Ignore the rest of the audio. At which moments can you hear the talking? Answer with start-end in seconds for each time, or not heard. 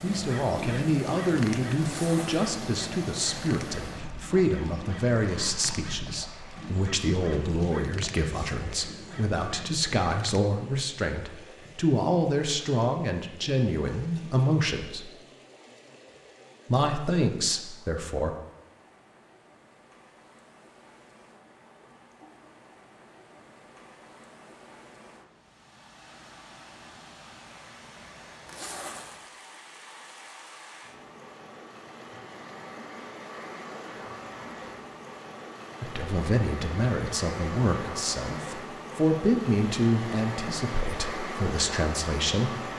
0.0-15.1, 16.6-18.4, 35.8-42.5.